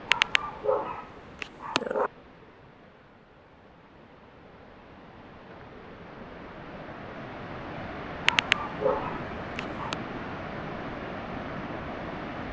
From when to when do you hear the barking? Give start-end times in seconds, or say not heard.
0.1-2.1, 8.2-9.9.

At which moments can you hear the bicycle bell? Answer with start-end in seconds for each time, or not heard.
not heard.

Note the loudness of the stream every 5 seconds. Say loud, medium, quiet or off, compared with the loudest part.
quiet, loud, loud.